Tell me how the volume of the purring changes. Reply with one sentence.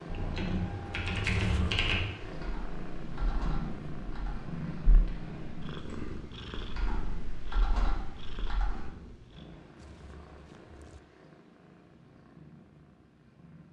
The volume of the purring goes down.